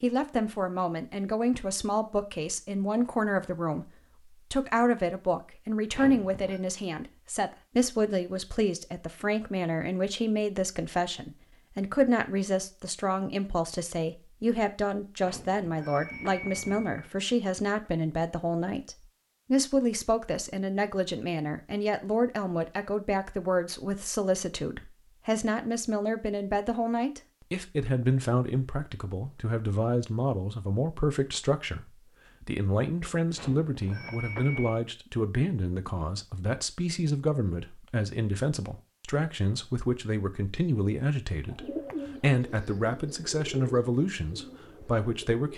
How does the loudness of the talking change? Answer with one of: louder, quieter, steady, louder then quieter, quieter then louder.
steady.